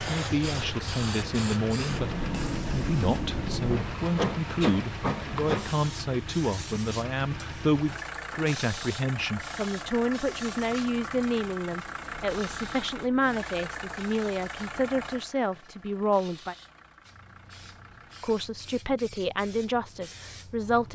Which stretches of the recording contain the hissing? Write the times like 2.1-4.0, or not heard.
0.0-20.9.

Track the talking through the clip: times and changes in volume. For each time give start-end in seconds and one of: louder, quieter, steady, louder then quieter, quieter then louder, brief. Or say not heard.
0.0-16.6 steady
18.2-20.9 brief.